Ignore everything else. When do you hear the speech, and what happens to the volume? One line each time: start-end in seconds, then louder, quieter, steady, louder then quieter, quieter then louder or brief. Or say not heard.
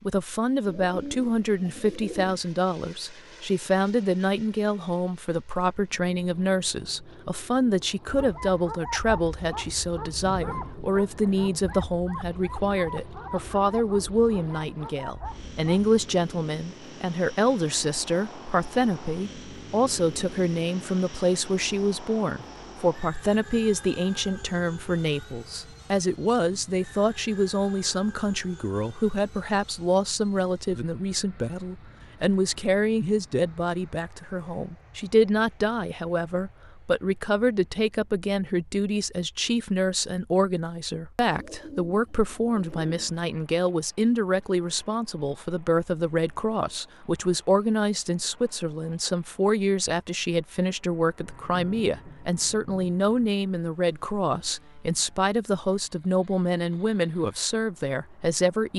0.0-58.7 steady.